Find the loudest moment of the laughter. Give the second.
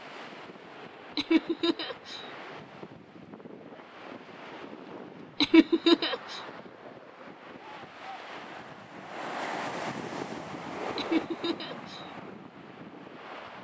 6 s.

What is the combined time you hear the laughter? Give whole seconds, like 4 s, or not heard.
3 s.